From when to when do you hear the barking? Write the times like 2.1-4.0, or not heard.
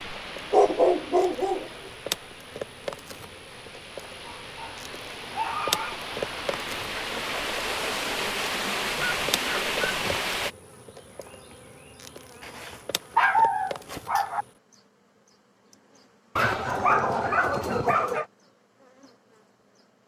0.5-1.7, 4.2-6.0, 8.9-10.2, 12.4-14.4, 16.4-18.2.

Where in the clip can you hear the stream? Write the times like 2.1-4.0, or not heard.
0.0-10.6.